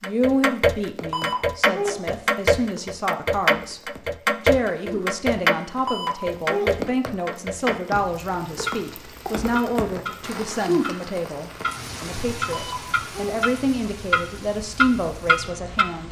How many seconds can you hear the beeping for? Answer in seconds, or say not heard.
3 s.